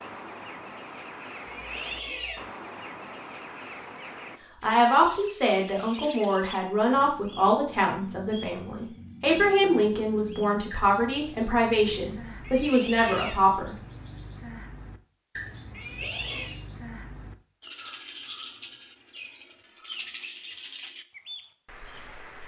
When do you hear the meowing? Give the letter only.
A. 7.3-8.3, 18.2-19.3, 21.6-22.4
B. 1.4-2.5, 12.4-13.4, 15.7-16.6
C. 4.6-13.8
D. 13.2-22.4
B.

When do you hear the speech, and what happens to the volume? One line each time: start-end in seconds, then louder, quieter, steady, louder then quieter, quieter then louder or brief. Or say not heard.
4.6-13.8 steady.